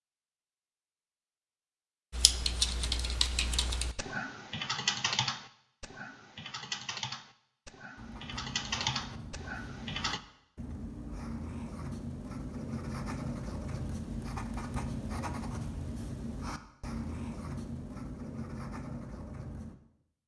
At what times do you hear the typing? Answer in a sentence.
You can hear the typing from 2.1 to 10.2 s.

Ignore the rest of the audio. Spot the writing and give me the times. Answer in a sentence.
The writing can be heard from 8.0 to 19.8 s.